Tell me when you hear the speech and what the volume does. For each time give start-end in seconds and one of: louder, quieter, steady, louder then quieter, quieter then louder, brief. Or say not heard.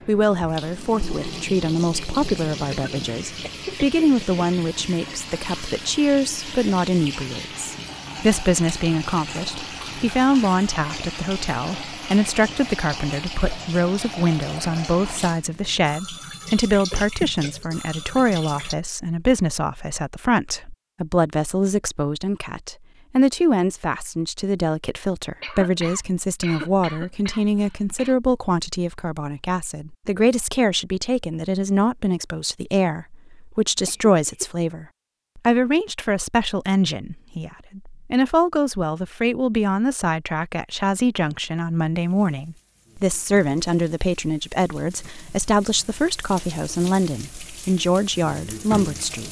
0.1-49.2 steady.